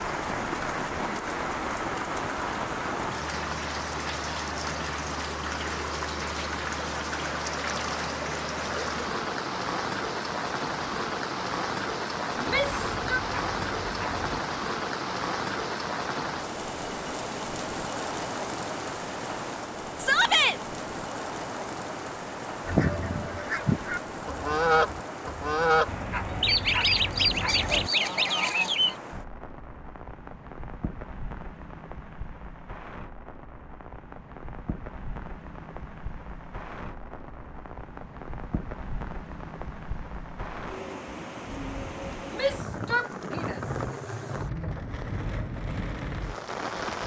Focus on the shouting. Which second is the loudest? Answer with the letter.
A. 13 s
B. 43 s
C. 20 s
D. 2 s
C.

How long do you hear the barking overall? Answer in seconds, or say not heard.
4 s.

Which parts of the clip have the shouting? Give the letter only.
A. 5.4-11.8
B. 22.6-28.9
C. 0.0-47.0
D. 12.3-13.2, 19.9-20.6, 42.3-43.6
D.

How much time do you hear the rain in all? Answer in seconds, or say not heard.
47 s.